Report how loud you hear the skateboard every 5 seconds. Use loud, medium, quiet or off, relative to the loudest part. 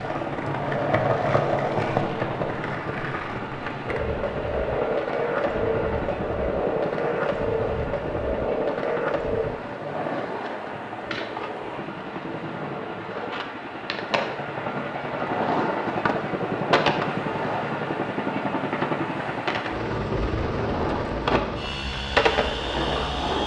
loud, loud, medium, loud, loud.